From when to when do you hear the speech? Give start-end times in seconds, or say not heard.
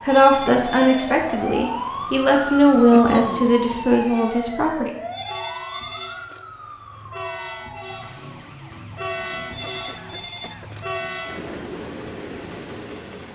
0.0-4.9.